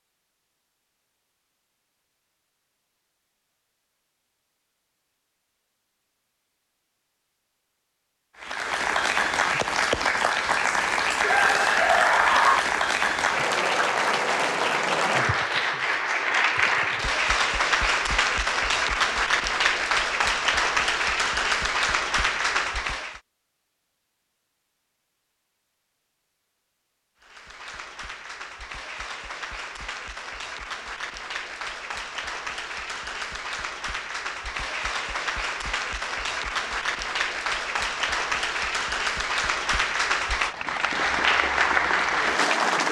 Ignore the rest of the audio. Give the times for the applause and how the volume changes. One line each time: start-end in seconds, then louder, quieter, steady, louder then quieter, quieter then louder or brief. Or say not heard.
8.4-23.2 steady
27.2-42.8 louder.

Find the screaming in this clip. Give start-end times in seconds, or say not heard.
11.2-12.6.